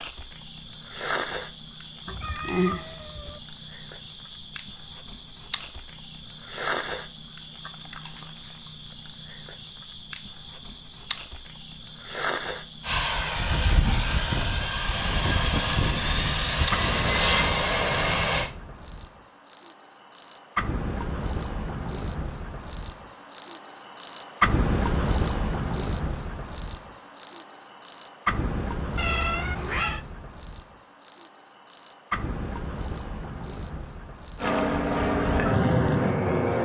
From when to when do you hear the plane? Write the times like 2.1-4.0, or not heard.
12.8-18.5, 34.4-36.6.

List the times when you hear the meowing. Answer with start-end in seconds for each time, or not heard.
2.0-3.4, 28.9-30.0.